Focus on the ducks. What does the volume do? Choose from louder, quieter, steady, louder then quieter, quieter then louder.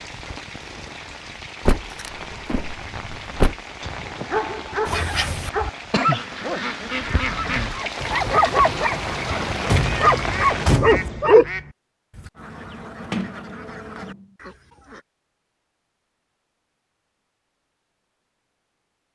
quieter.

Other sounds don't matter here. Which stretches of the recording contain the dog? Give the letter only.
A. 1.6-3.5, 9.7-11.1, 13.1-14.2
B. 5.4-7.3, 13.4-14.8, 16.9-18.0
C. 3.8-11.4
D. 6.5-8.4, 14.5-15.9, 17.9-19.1
C.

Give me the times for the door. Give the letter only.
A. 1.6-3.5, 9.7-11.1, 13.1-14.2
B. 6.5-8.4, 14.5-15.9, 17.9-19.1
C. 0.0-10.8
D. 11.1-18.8
A.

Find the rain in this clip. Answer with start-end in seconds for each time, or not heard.
0.0-10.8.